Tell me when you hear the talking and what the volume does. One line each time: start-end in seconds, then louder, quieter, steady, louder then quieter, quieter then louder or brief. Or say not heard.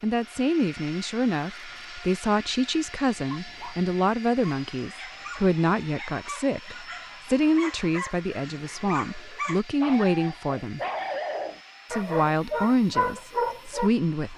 0.0-10.8 steady
11.9-14.3 brief.